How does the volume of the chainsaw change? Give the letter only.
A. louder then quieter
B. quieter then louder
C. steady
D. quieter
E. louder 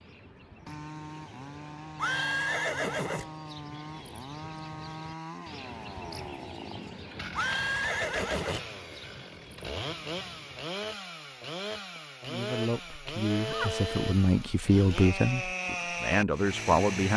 E.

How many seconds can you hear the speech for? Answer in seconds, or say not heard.
5 s.